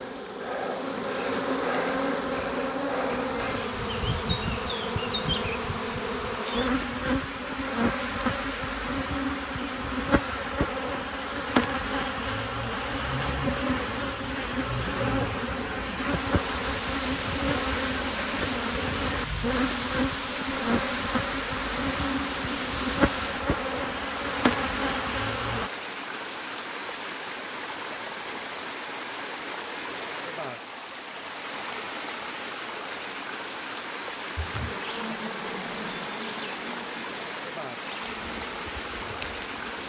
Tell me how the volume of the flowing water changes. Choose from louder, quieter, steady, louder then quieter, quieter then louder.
steady.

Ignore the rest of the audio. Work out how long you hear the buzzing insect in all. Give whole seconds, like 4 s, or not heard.
31 s.